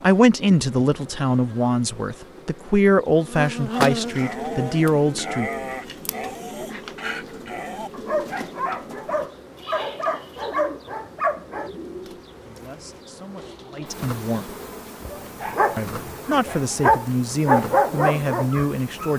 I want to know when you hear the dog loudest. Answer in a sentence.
The loudest moment of the dog is at 18 seconds.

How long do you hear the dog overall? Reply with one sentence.
You can hear the dog for 12 seconds altogether.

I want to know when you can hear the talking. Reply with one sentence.
You can hear the talking from 0.0 to 5.5 s, from 12.4 to 14.5 s and from 15.8 to 19.1 s.